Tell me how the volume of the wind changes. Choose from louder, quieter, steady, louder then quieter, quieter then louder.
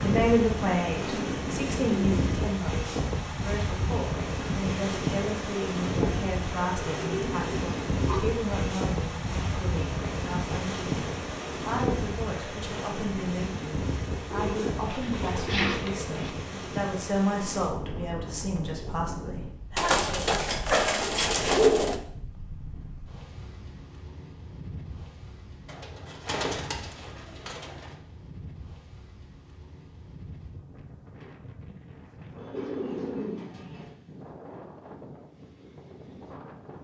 quieter.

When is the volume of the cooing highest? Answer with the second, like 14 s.
22 s.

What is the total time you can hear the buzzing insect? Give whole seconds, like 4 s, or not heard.
not heard.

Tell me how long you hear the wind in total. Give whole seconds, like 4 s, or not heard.
37 s.